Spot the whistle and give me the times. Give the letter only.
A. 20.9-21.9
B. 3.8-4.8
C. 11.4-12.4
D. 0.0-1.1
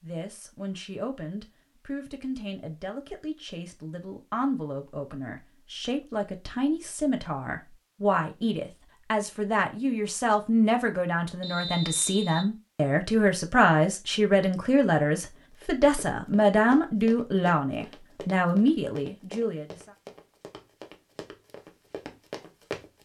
C.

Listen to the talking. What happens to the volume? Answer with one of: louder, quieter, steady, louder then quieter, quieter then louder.
louder.